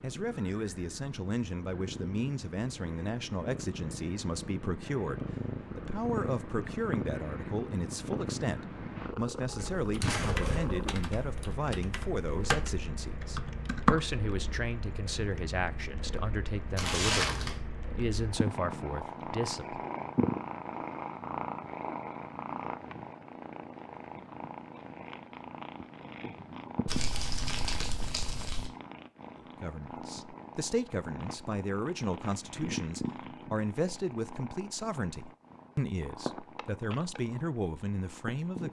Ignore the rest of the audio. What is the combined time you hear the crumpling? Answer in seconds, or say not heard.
3 s.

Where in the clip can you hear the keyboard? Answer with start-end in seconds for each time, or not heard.
9.6-14.0.